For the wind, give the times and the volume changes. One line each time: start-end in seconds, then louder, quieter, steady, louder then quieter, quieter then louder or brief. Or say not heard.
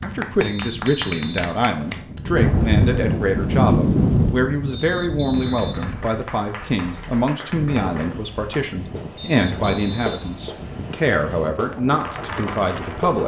0.0-13.2 quieter.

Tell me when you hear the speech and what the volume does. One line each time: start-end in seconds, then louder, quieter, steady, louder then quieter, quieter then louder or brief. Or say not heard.
0.0-13.2 steady.